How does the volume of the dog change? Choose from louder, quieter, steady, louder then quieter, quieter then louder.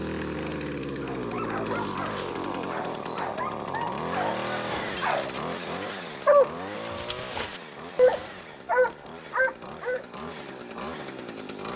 louder.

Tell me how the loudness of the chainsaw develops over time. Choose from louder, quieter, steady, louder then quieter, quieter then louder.
quieter.